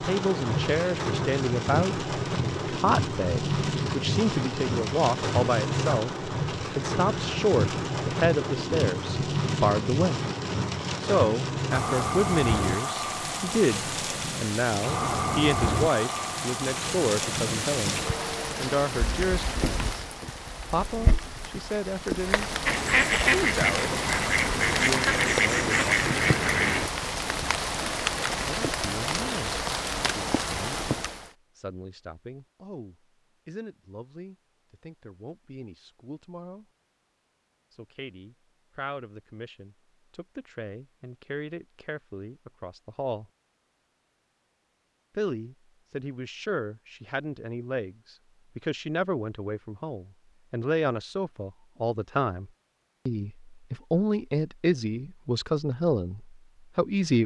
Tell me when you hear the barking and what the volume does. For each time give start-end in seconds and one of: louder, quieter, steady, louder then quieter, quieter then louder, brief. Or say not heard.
not heard.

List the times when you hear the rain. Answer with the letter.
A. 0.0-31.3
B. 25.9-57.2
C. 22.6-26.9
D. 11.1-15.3
A.